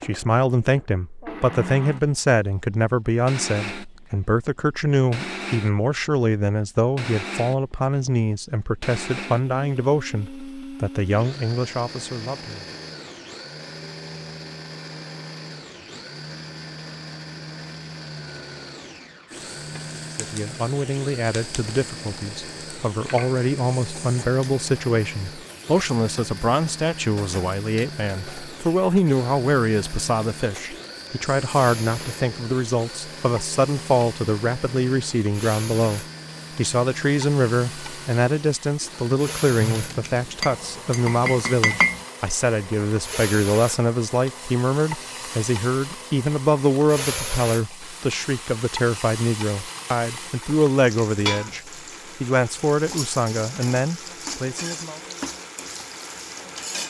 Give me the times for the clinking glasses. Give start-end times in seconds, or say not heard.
39.7-42.0.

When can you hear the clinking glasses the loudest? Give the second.
42 s.